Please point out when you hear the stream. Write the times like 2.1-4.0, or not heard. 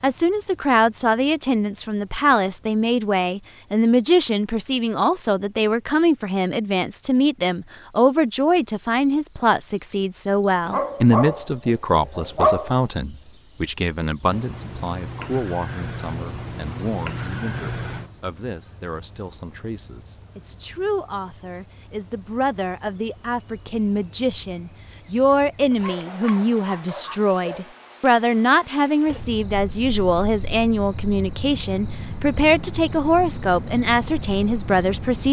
not heard.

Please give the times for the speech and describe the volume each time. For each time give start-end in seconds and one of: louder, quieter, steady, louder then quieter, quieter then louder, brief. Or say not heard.
0.0-35.2 quieter then louder.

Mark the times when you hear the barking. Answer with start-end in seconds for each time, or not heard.
10.7-12.7, 25.7-27.7.